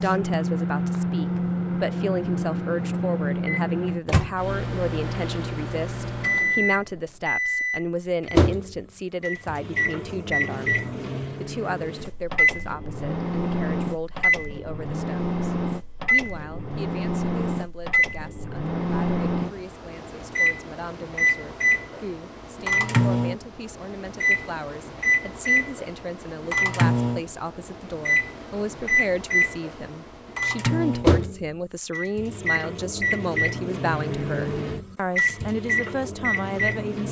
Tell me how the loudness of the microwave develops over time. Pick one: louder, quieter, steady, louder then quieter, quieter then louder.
steady.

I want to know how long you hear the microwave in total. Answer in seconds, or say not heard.
37 s.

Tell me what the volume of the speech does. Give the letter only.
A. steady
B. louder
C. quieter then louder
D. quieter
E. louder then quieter
C.